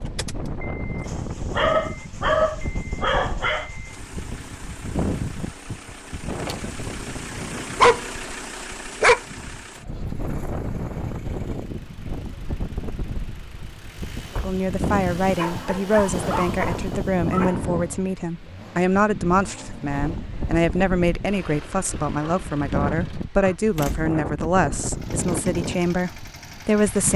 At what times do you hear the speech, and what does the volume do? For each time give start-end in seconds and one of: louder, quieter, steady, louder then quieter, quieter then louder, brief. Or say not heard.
14.3-27.1 steady.